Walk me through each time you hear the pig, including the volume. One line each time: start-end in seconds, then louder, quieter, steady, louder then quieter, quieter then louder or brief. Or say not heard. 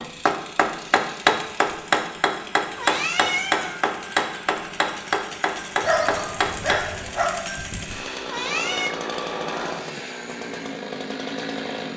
not heard.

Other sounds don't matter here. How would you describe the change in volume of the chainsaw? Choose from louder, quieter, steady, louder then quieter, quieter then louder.
louder.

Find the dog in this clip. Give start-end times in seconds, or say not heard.
5.8-7.2.